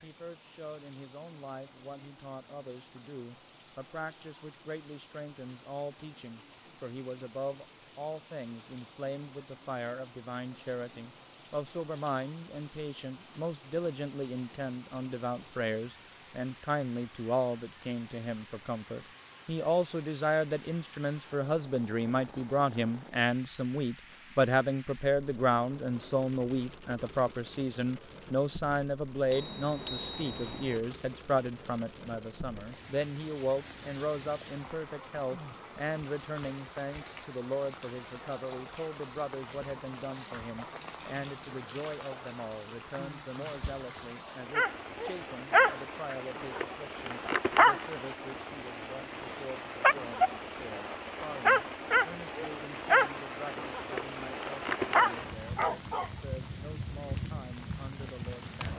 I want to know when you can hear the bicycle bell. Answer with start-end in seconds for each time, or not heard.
29.3-30.8.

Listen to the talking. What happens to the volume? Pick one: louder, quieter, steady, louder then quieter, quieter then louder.
louder then quieter.